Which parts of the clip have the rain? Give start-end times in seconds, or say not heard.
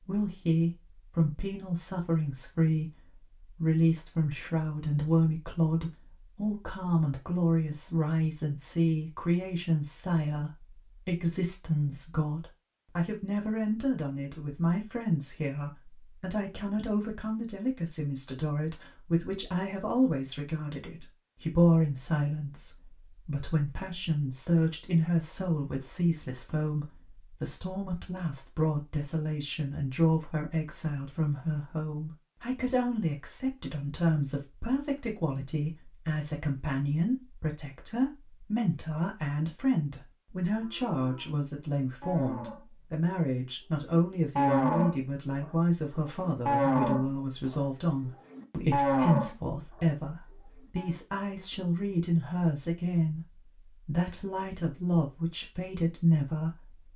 not heard.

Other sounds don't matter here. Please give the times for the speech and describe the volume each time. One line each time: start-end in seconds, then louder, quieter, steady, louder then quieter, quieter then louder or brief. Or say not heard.
0.0-56.8 steady.